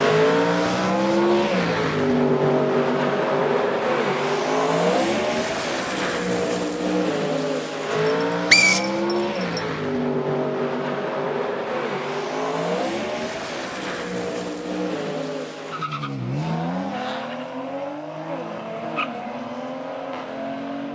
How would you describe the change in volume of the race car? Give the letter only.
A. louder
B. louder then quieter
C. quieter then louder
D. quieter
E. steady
D.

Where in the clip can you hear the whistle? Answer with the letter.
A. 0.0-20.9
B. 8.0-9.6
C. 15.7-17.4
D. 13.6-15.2
B.